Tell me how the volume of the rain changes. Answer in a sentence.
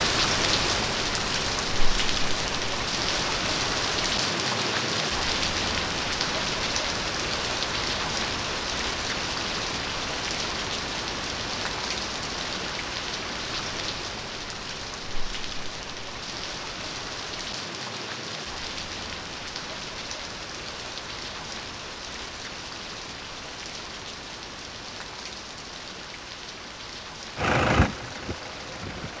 The loudness of the rain goes down.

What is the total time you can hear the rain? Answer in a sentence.
The rain can be heard for 29 seconds in total.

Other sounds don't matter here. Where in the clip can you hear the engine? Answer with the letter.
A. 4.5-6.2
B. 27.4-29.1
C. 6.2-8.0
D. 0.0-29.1
B.